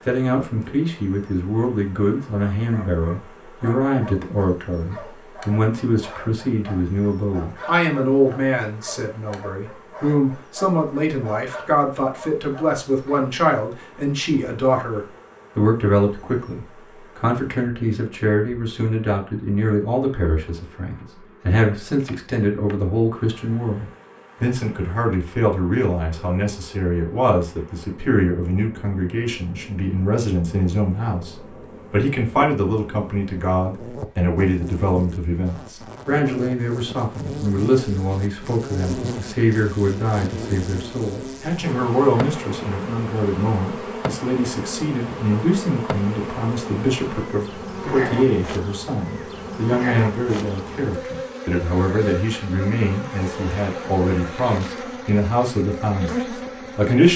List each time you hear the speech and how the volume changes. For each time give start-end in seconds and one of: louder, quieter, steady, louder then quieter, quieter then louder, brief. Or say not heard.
0.1-57.1 steady.